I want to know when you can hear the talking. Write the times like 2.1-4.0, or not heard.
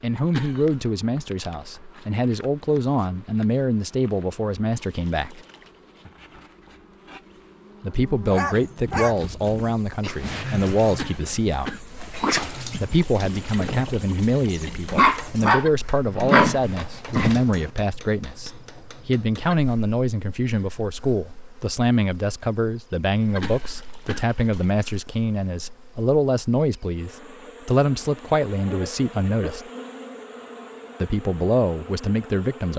0.0-5.4, 7.8-11.8, 12.8-29.6, 31.0-32.7.